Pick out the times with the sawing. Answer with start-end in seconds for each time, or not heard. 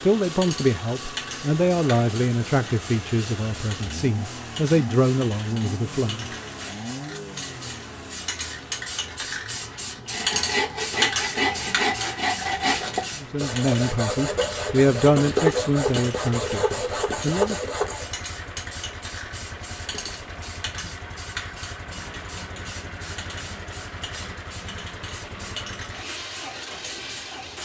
10.1-18.1.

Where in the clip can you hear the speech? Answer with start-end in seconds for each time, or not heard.
0.0-6.3, 13.2-17.6.